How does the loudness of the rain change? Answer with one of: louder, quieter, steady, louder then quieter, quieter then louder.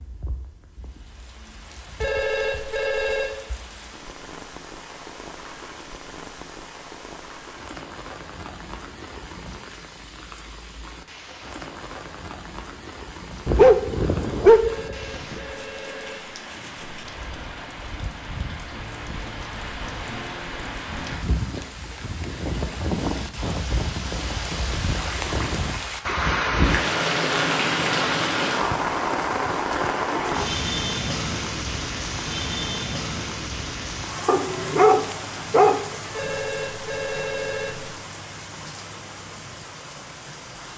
louder then quieter.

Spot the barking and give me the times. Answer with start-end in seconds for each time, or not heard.
13.4-15.3, 34.2-35.8.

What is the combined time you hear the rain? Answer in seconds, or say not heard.
41 s.